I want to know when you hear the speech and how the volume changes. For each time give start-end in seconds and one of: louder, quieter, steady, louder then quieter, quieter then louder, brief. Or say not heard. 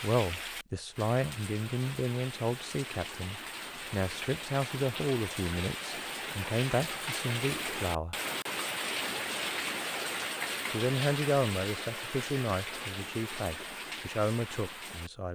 0.0-8.2 steady
10.7-15.3 quieter then louder.